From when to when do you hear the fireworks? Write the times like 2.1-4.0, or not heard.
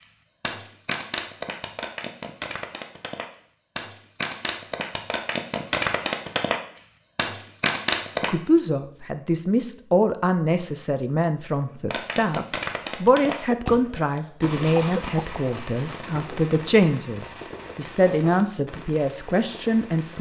0.0-8.3, 11.9-20.1.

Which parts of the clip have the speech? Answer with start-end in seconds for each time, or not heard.
8.2-20.1.